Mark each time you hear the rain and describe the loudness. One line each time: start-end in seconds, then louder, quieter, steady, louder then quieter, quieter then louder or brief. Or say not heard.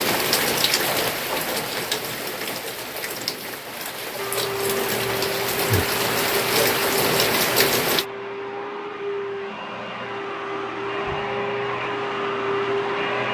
0.0-8.1 quieter then louder.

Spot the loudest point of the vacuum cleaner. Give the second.
13 s.